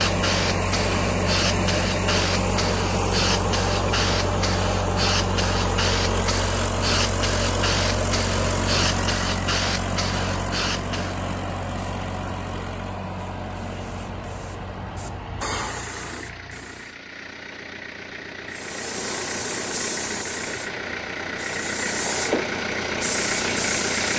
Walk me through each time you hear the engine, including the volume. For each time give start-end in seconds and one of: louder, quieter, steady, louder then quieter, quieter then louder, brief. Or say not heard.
0.0-24.1 quieter then louder.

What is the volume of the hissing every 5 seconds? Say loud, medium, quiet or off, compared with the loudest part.
loud, loud, medium, loud, loud.